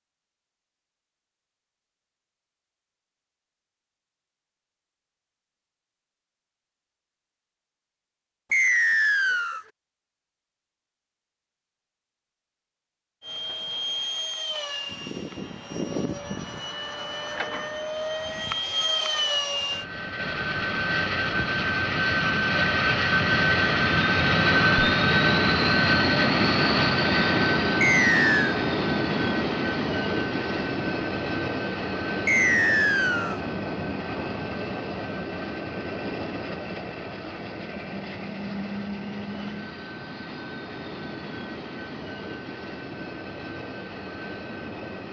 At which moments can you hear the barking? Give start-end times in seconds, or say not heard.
not heard.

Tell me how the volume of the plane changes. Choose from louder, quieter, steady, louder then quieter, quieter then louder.
louder then quieter.